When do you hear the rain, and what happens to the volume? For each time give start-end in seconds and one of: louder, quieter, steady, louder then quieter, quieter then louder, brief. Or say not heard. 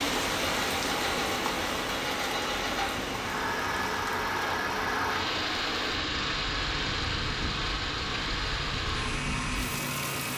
0.0-10.3 quieter.